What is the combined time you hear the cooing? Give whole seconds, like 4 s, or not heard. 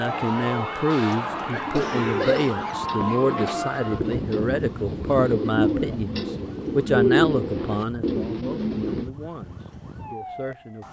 8 s.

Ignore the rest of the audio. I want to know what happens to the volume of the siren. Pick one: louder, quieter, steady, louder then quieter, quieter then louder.
quieter.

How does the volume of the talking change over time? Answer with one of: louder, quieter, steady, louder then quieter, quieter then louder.
quieter.